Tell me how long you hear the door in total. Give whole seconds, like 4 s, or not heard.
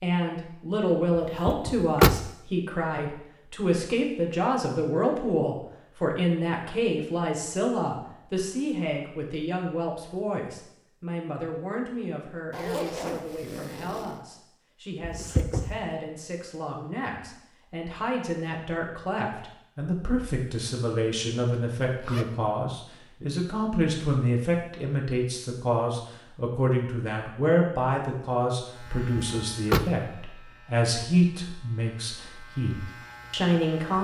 2 s.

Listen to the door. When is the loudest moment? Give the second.
2 s.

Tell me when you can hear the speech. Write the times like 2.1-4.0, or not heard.
0.0-33.9.